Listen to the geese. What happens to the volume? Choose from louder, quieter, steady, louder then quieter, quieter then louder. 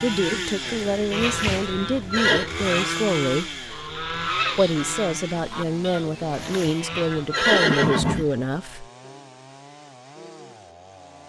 louder then quieter.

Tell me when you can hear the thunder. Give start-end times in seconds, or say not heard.
not heard.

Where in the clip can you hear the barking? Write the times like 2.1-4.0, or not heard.
not heard.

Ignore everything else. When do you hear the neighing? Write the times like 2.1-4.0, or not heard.
1.2-2.5, 6.3-8.3.